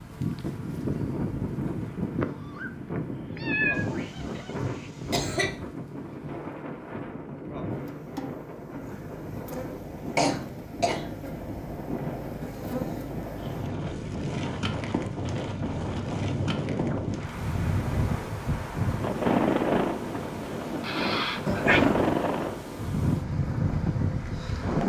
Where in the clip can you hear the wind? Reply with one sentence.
You can hear the wind from 0.0 to 24.8 s.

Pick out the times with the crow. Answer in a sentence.
The crow can't be heard in this clip.